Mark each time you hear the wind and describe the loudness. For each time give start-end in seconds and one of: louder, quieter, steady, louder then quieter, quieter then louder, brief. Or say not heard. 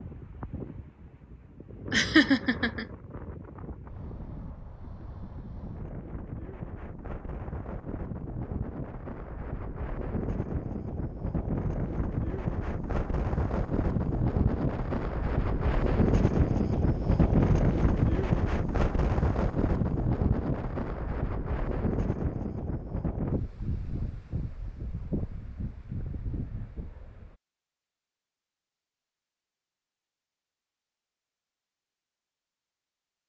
0.0-27.4 louder then quieter.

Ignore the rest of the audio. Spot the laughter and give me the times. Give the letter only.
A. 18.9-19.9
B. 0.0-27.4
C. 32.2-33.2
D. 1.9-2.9
D.